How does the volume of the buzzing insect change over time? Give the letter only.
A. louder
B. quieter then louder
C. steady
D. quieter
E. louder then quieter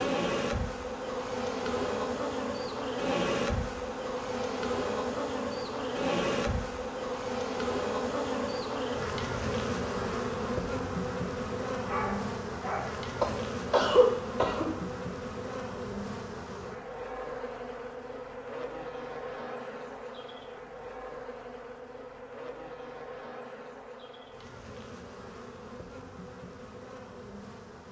D.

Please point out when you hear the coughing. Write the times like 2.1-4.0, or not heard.
13.2-14.7.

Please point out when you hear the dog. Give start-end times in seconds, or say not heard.
11.8-13.1.